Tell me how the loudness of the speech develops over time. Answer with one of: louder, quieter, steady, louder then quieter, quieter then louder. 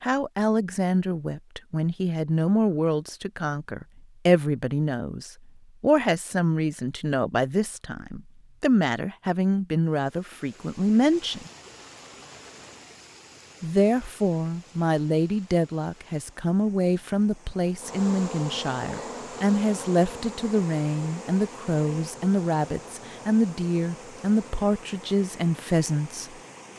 steady.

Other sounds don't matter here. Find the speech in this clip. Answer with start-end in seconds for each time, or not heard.
0.0-11.5, 13.6-26.2.